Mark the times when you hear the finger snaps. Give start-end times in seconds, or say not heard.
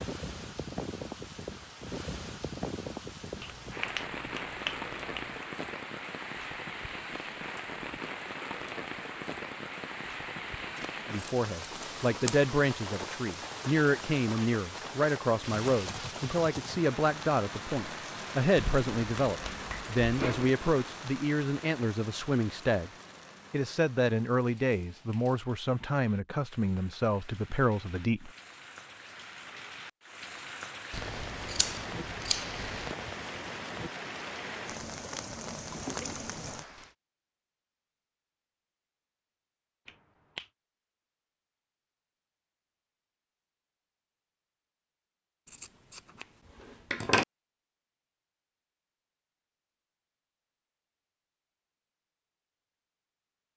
3.4-5.5, 18.6-20.5, 39.9-40.5.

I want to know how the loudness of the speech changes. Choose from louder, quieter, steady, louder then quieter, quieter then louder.
steady.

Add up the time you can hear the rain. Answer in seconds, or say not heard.
37 s.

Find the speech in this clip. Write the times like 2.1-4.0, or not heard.
11.1-22.9, 23.5-28.3.